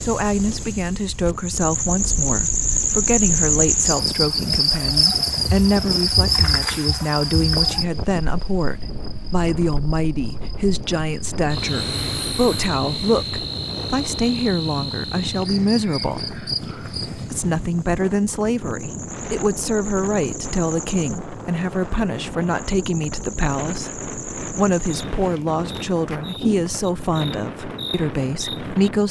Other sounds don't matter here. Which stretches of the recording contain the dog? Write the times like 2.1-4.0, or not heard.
not heard.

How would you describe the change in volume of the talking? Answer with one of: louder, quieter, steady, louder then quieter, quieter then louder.
steady.